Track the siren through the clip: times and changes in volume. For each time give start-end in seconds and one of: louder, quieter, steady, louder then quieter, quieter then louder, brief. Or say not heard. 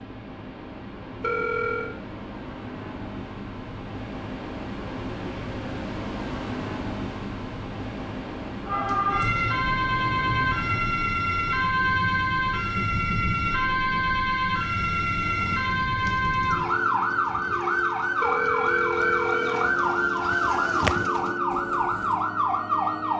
8.7-23.1 steady.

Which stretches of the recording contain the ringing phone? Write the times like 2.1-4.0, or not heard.
1.2-1.9, 18.2-19.6.